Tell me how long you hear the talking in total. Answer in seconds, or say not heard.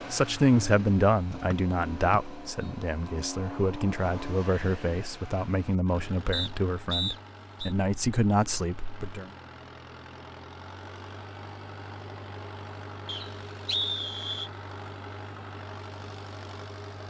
9 s.